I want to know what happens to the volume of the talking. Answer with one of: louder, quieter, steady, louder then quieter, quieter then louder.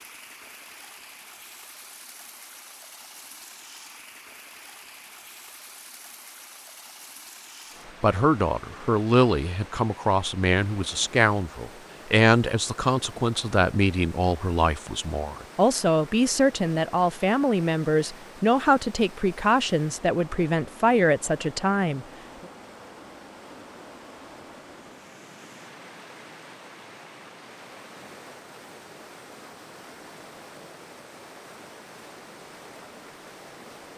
steady.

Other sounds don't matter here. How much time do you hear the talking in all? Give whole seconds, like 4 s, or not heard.
14 s.